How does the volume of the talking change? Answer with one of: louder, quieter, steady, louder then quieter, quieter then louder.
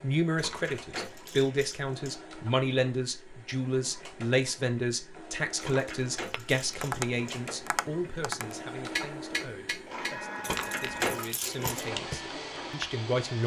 quieter.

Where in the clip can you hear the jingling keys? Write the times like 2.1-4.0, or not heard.
0.3-2.2, 5.6-7.2, 10.4-11.8.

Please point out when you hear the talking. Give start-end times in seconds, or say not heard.
0.0-13.4.